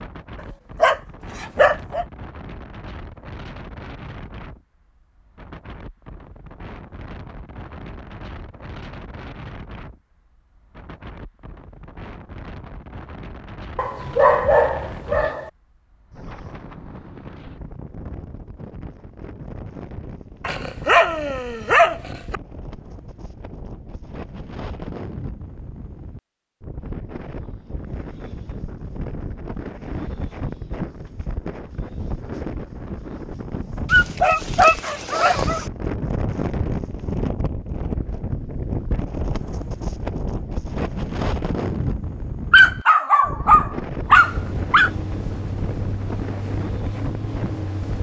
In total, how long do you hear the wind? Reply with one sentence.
The wind can be heard for 48 seconds in total.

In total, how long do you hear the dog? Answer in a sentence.
The dog can be heard for 9 seconds in total.